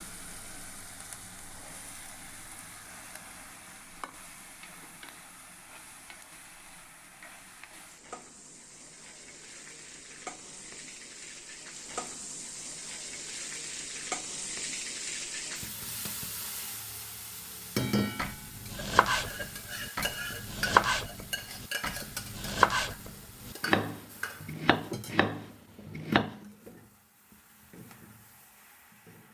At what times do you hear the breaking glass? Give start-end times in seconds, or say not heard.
not heard.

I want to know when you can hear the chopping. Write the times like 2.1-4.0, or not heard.
18.0-26.4.